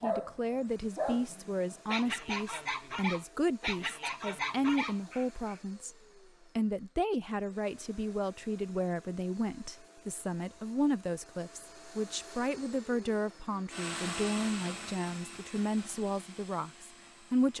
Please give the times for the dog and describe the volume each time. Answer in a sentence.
You can hear the dog from 0.0 to 5.6 s, at a steady volume.